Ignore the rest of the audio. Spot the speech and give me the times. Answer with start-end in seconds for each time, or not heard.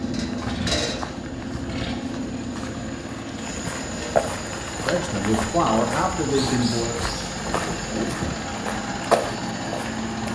4.8-7.0.